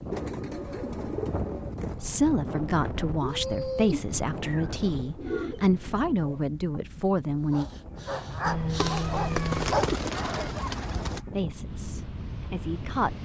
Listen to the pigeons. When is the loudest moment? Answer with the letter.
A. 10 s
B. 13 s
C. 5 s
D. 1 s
A.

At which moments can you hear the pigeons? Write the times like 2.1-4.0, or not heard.
0.1-2.0, 4.4-6.4, 8.8-11.2.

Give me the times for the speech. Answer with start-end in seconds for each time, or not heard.
2.0-7.7, 11.3-13.2.